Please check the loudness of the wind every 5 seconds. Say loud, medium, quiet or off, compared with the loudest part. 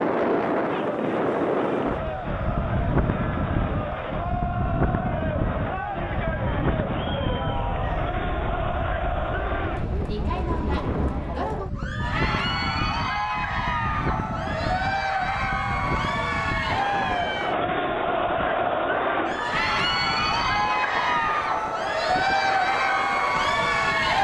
loud, medium, medium, medium, medium.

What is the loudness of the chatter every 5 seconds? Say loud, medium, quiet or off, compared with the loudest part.
medium, medium, medium, loud, loud.